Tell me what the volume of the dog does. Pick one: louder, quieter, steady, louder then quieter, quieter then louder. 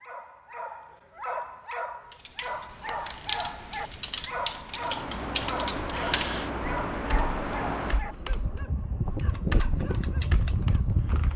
quieter.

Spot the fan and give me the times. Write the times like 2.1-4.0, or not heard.
4.7-11.3.